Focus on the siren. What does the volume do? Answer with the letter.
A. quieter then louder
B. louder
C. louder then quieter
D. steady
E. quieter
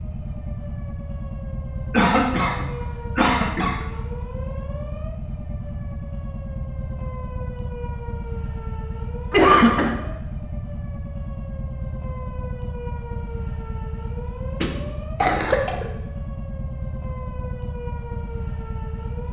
D.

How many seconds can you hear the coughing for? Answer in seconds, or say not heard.
4 s.